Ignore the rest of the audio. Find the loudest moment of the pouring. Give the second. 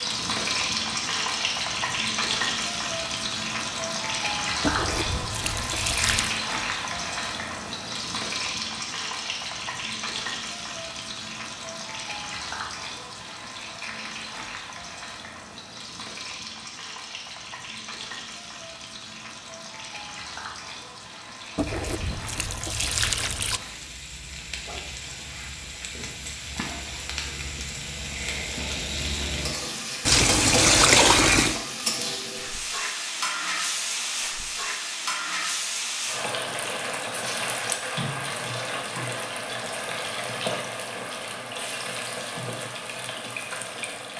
31 s.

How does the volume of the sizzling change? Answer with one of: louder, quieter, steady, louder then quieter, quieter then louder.
quieter then louder.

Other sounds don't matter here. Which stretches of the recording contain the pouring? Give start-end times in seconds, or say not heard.
4.6-6.3, 21.6-23.6, 30.1-31.6.